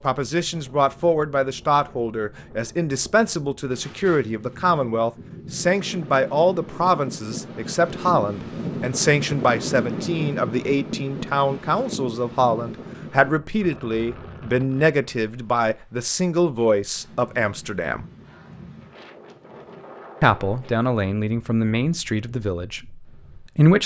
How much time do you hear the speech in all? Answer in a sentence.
You can hear the speech for 22 seconds altogether.